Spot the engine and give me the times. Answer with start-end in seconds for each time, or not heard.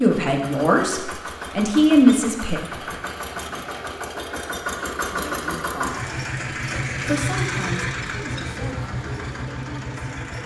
0.0-10.4.